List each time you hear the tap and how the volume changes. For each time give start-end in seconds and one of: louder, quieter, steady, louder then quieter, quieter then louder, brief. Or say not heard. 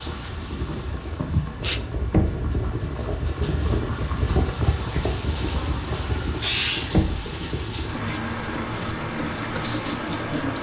0.0-10.5 louder.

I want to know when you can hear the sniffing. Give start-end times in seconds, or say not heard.
1.2-1.8, 5.3-6.9.